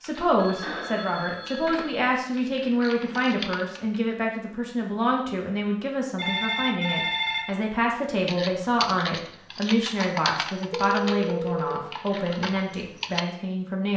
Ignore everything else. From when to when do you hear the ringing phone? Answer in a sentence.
You can hear the ringing phone from 0.3 to 1.9 s, from 6.2 to 7.5 s and from 10.7 to 11.8 s.